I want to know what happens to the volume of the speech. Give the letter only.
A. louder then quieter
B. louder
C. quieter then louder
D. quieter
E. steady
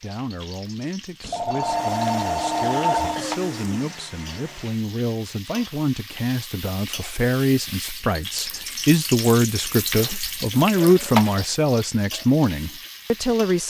B.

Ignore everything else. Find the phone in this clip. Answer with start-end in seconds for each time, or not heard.
1.2-3.2.